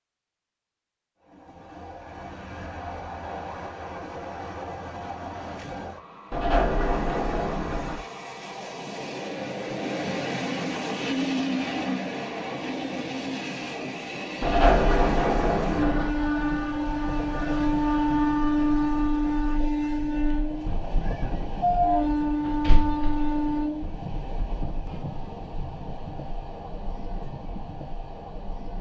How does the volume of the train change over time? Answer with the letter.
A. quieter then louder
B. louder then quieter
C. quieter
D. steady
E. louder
B.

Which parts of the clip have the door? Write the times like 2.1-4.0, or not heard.
6.3-8.0, 14.4-16.1, 22.4-23.4.